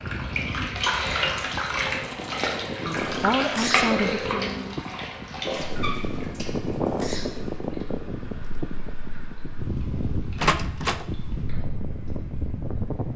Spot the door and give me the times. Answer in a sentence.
You can hear the door from 10.3 to 11.1 s.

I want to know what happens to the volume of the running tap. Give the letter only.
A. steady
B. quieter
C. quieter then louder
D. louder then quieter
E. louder
B.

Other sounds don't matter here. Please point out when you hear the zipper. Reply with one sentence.
You can't hear the zipper here.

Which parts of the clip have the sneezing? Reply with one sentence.
The sneezing can be heard from 3.4 to 4.0 s and from 6.8 to 7.5 s.